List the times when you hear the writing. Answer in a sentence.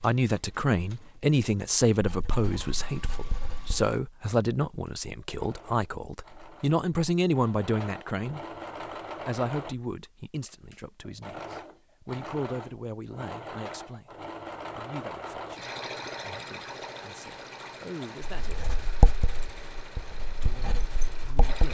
You can hear the writing from 2.0 to 3.9 s and from 18.4 to 21.6 s.